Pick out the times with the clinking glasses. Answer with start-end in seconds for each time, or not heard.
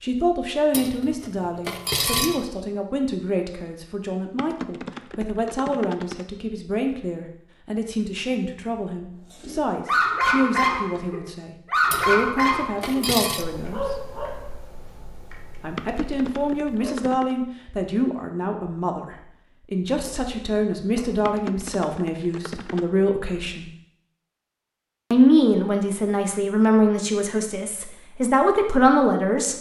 0.7-2.5, 11.9-13.4, 20.1-21.2.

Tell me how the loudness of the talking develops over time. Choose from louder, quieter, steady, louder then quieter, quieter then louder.
louder.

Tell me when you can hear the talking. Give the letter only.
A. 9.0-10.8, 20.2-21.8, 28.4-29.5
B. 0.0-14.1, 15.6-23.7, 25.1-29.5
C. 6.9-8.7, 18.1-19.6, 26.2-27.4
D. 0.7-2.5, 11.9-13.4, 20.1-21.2
B.